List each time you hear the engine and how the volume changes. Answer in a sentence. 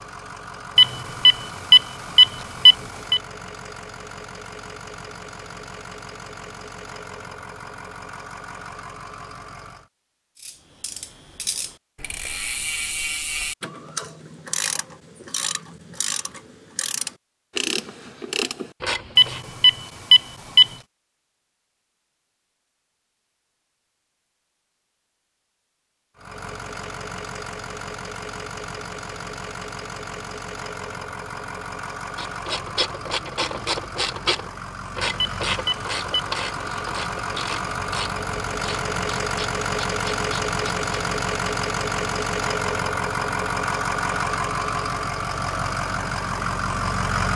The engine can be heard from 0.0 to 9.9 s, at a steady volume; and from 26.1 to 47.3 s, getting louder.